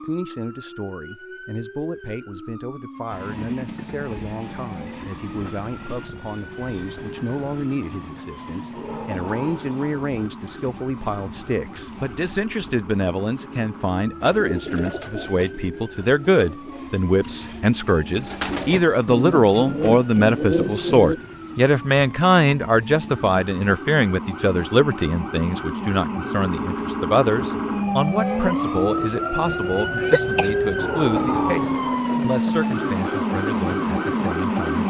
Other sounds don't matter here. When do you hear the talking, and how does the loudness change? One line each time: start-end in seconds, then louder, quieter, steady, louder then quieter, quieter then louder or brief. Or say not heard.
0.0-34.8 louder then quieter.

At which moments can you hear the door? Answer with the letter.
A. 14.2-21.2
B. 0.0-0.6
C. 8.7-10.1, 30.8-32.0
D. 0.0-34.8
C.